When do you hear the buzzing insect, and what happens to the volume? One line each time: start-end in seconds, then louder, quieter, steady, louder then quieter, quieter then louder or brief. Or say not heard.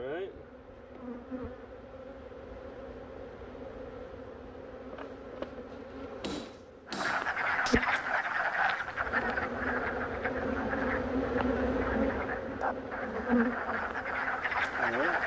0.0-15.2 louder.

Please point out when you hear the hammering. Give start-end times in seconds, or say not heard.
6.2-7.8.